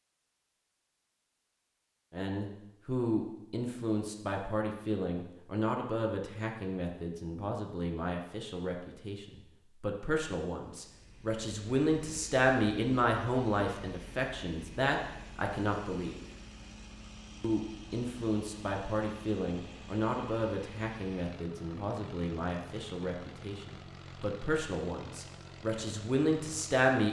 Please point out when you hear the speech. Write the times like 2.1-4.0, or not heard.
2.1-16.2, 17.4-27.0.